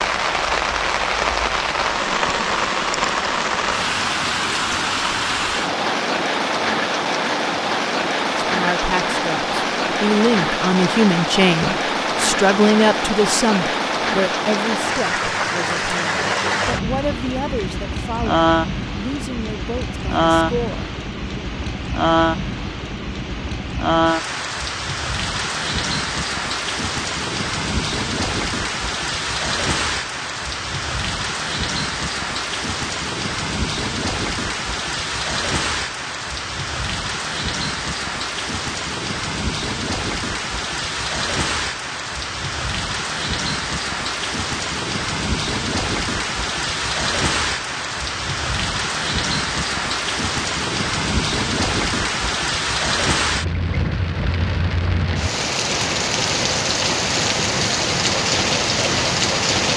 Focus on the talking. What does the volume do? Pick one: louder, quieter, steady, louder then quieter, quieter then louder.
quieter.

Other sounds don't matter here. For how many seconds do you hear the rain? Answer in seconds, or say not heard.
60 s.